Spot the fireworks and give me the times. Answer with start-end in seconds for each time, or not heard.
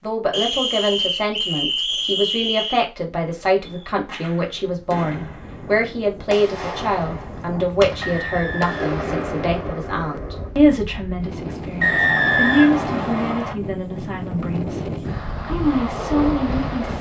3.1-10.6.